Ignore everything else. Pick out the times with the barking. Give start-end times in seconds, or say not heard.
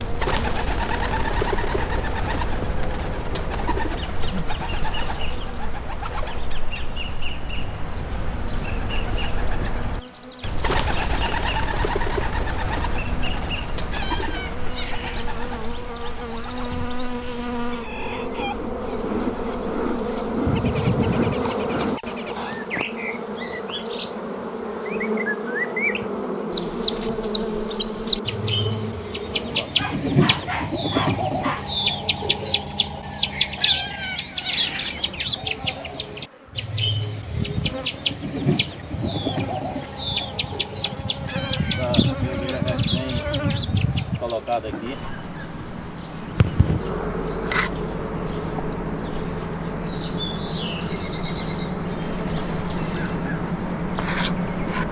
29.6-31.6.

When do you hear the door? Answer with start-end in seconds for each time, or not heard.
not heard.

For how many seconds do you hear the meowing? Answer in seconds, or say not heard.
4 s.